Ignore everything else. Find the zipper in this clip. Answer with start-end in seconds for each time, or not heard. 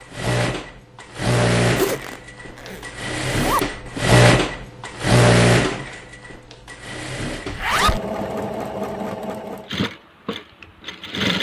1.8-3.6, 7.5-8.0.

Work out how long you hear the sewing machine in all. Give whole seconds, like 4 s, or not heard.
11 s.